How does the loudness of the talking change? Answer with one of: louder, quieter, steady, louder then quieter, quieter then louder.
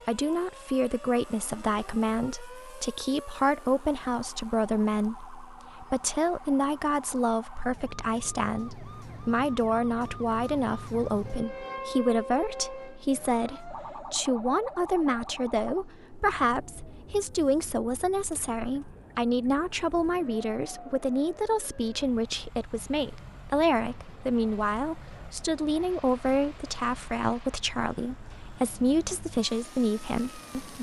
steady.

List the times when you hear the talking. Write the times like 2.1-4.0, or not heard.
0.1-30.7.